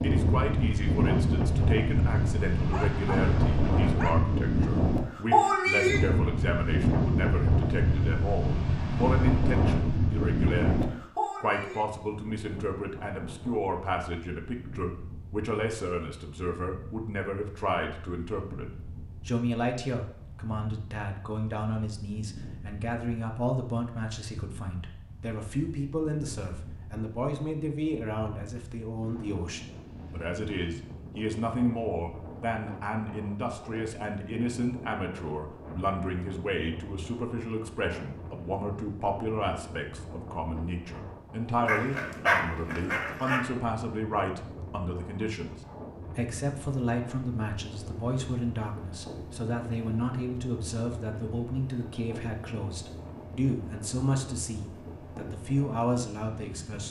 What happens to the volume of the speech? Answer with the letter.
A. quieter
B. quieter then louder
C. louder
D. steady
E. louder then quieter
D.